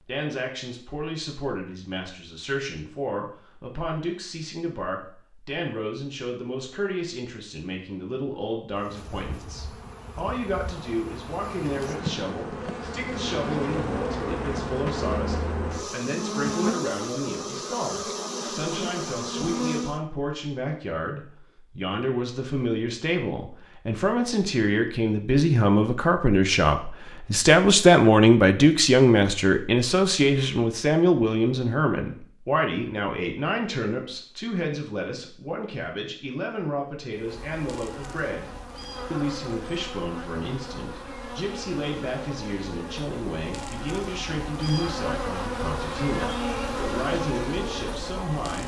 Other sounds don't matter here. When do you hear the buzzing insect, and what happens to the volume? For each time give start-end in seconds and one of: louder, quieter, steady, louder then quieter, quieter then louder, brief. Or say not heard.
8.8-20.0 louder
37.1-48.6 louder.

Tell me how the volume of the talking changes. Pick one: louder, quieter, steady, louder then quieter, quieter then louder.
louder then quieter.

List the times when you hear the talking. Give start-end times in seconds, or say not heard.
0.1-48.6.